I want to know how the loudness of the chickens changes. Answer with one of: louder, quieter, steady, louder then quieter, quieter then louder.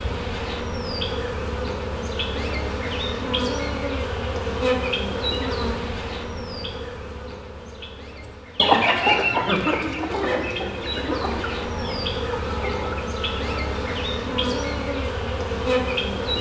quieter.